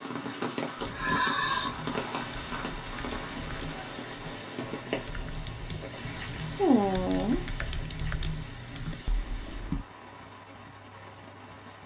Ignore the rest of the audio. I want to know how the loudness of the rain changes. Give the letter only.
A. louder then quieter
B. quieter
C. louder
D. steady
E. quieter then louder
B.